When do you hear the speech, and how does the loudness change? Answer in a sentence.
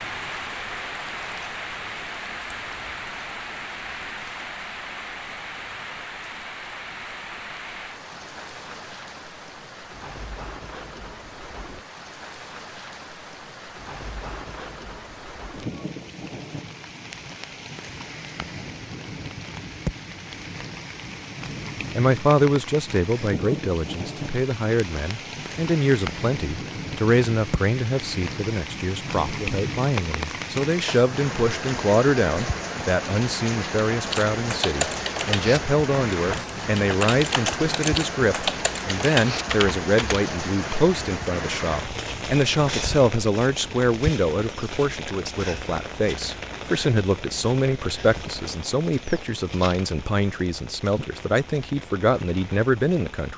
The speech can be heard from 21.9 to 53.3 s, at a steady volume.